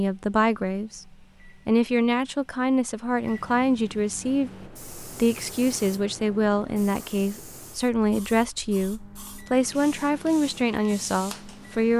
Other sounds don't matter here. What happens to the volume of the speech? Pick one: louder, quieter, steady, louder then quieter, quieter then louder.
steady.